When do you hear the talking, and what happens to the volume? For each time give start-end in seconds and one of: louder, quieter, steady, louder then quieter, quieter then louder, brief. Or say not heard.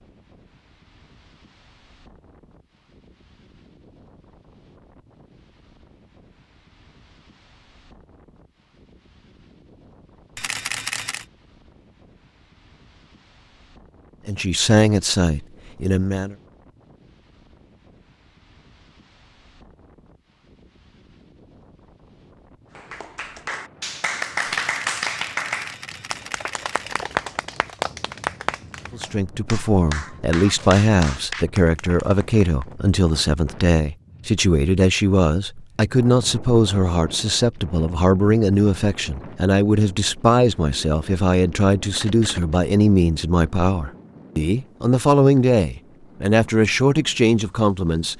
14.2-16.4 brief
28.9-48.1 steady.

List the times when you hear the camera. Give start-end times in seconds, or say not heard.
10.3-11.2, 24.6-27.1, 41.9-42.6.